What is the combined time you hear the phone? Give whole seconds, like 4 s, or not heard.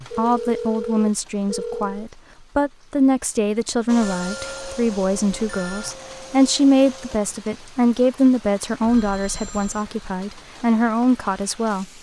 5 s.